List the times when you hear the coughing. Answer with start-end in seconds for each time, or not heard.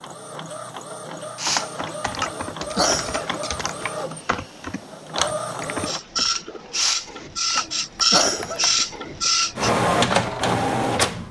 1.4-3.5, 6.7-9.3.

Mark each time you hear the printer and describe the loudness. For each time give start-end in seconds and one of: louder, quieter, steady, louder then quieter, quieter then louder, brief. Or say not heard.
0.0-11.2 louder.